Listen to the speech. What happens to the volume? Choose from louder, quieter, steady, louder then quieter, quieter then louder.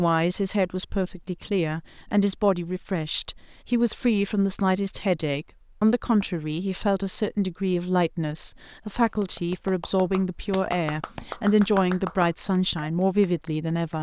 steady.